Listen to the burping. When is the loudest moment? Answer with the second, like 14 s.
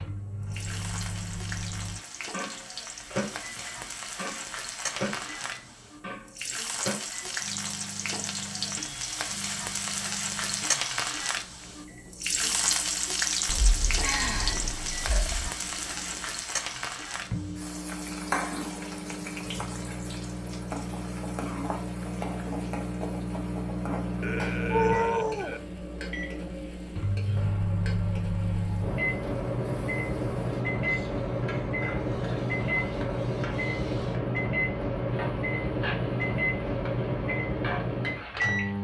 25 s.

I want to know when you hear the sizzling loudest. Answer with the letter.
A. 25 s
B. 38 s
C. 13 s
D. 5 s
C.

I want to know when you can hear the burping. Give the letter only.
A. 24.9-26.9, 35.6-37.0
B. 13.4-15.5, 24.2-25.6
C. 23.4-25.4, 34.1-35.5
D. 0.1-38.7
B.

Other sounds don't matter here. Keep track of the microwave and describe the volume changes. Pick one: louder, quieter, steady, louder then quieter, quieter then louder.
quieter then louder.